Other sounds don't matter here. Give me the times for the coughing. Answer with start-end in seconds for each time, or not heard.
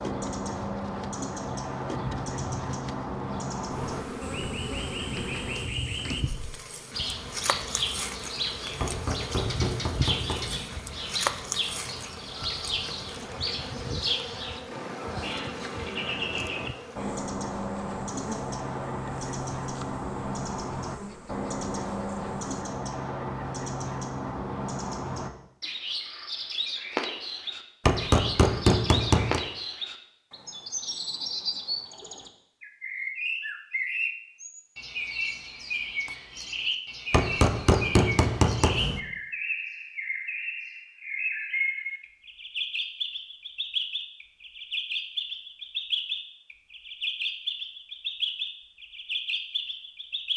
not heard.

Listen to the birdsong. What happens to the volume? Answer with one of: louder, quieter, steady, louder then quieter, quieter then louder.
steady.